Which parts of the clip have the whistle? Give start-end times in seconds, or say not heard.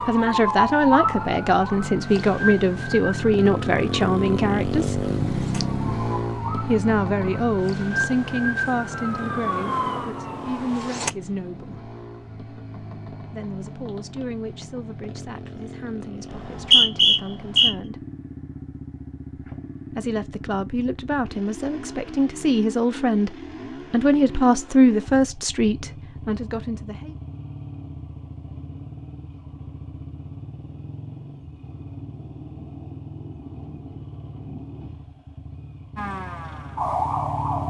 16.3-17.7.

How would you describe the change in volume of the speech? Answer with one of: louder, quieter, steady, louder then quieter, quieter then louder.
quieter then louder.